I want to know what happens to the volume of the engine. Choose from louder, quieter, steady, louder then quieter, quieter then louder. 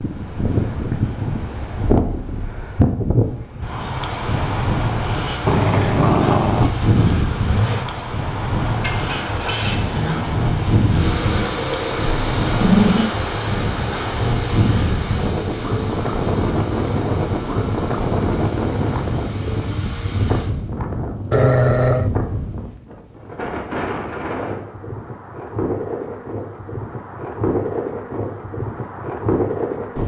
louder then quieter.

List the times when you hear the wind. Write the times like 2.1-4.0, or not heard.
0.0-30.0.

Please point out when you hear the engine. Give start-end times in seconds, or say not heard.
4.0-20.5.